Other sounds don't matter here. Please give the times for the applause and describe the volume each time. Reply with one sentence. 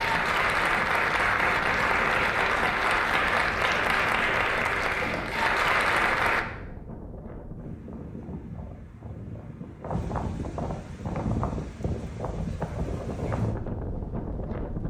You can hear the applause from 0.0 to 6.5 s, at a steady volume.